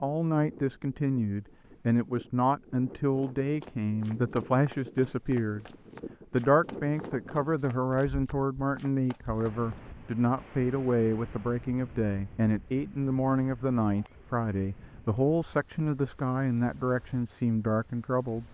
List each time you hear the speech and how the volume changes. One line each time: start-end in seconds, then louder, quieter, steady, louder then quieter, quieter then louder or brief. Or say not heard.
0.0-5.7 steady
6.3-18.4 steady.